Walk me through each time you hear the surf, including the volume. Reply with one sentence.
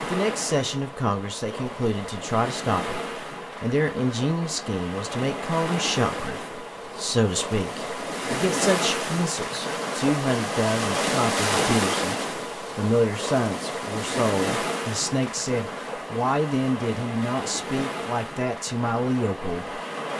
The surf can be heard from 0.0 to 20.1 s, getting louder then quieter.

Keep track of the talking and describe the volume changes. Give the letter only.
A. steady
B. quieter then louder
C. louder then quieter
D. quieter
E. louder
A.